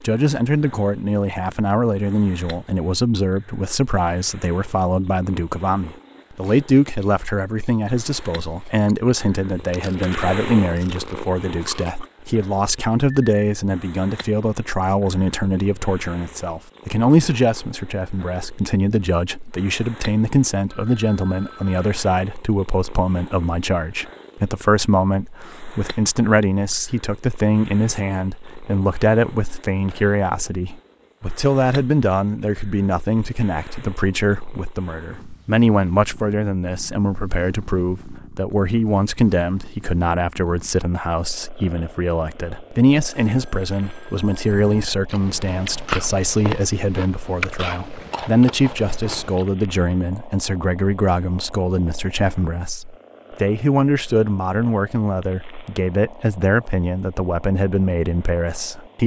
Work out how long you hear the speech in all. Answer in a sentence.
The speech can be heard for 59 seconds in total.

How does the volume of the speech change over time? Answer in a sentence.
The volume of the speech stays about the same.